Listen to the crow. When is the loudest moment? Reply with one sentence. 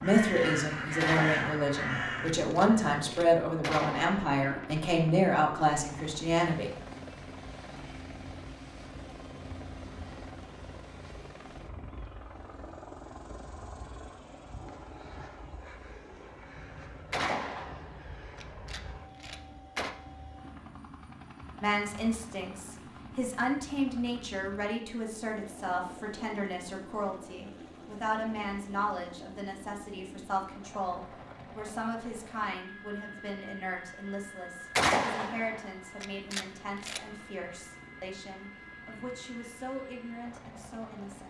The volume of the crow peaks at 1 second.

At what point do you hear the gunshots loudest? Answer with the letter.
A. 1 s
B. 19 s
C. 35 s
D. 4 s
C.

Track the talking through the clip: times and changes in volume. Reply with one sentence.
You can hear the talking from 0.0 to 6.7 s, at a steady volume; and from 21.6 to 41.2 s, getting quieter.